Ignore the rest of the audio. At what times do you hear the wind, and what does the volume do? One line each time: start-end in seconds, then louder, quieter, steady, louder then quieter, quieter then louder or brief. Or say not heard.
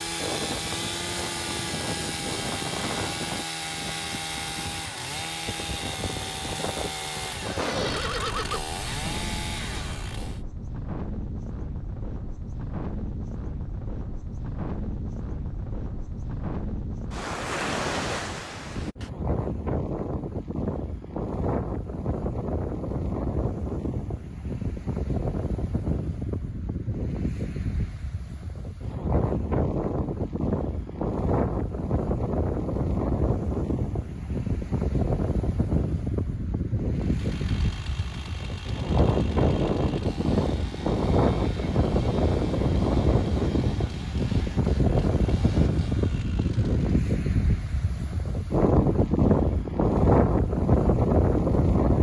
0.0-51.9 louder.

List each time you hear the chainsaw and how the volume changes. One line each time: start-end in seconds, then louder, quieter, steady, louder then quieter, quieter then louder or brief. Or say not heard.
0.0-10.4 steady
36.9-47.0 steady.